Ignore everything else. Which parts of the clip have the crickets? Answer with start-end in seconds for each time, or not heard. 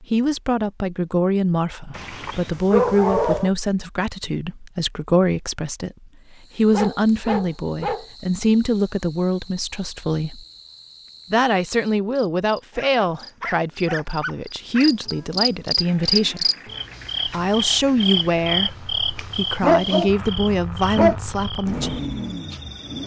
6.2-23.0.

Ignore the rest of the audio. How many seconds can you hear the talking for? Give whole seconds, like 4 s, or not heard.
20 s.